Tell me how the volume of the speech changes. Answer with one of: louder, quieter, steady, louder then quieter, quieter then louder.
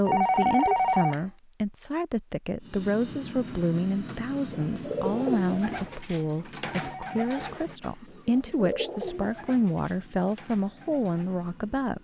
steady.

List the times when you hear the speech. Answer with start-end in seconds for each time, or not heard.
0.0-12.0.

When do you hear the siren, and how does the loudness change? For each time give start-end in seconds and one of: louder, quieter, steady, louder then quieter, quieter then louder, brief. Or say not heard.
not heard.